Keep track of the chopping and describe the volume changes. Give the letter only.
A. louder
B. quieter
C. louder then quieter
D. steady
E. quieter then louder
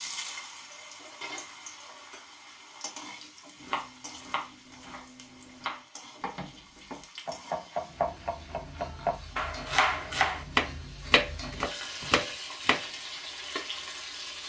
A.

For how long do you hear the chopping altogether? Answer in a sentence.
The chopping can be heard for 9 seconds in total.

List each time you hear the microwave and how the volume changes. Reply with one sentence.
You can't hear the microwave here.